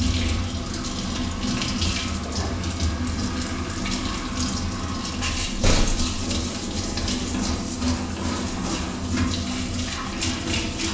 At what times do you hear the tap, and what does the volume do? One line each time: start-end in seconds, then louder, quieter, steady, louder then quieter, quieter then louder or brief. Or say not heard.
0.0-10.9 steady.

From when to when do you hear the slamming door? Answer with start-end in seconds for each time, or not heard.
5.5-6.2.